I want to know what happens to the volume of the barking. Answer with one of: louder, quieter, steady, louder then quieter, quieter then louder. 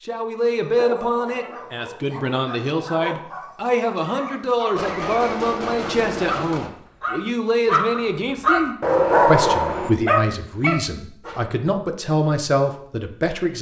louder.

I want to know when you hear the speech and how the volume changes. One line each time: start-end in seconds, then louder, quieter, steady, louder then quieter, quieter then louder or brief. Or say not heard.
0.1-13.5 steady.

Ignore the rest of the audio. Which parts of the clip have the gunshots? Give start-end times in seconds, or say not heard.
4.7-6.7.